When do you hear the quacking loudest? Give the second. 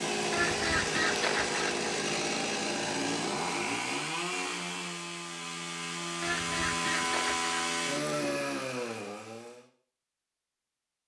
1 s.